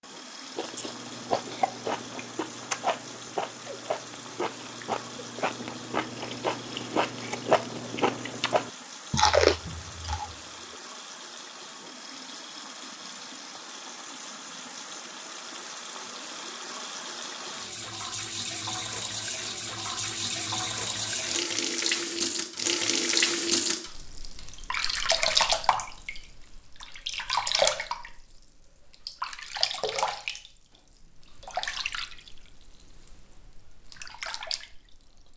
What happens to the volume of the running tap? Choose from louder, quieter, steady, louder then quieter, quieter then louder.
louder then quieter.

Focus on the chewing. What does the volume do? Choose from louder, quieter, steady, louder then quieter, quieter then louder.
louder.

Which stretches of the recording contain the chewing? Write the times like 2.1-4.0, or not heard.
0.6-10.3.